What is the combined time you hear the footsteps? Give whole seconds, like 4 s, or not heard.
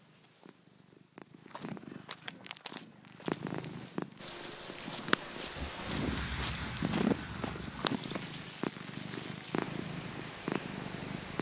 7 s.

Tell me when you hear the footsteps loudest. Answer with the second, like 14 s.
7 s.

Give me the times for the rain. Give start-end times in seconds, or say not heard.
4.2-11.3.